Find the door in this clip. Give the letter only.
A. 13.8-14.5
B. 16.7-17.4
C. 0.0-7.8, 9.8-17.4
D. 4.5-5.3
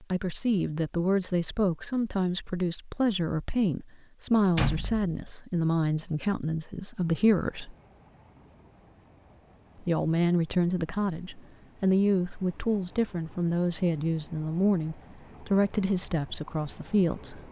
D.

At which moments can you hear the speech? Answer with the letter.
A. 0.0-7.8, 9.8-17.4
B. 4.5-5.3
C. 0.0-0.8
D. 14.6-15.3
A.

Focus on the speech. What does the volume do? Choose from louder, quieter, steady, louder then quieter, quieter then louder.
steady.